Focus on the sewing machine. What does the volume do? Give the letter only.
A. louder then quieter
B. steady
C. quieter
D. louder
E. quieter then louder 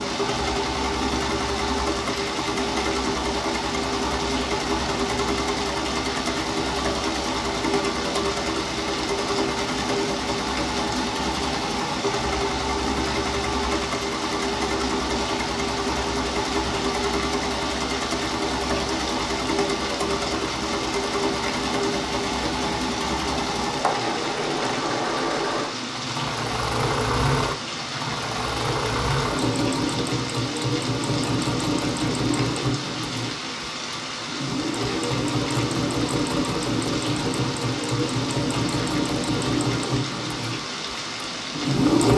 B.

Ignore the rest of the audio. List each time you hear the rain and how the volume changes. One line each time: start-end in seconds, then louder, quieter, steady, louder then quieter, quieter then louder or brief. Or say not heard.
0.0-42.1 steady.